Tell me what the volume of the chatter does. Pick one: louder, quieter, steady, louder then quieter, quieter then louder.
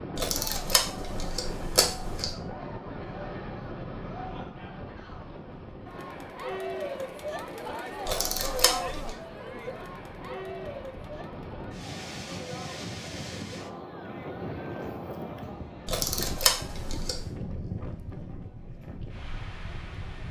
louder then quieter.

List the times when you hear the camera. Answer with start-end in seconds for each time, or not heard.
0.1-2.4, 8.1-9.2, 15.8-17.2.